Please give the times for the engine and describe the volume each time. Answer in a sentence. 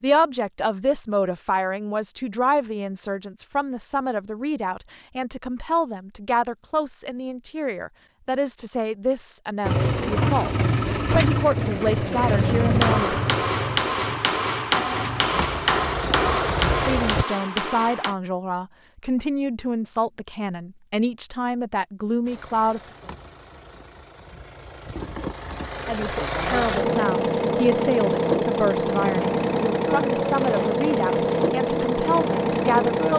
The engine can be heard from 9.6 to 17.2 s, getting quieter then louder; and from 22.2 to 33.1 s, getting louder.